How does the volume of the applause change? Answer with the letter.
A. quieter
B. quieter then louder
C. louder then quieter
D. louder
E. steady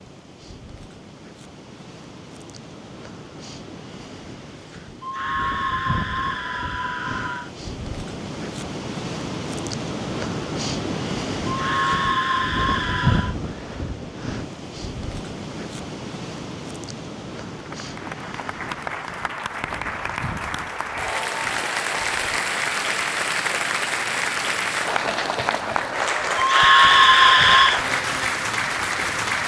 D.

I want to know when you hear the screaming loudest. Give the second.
27 s.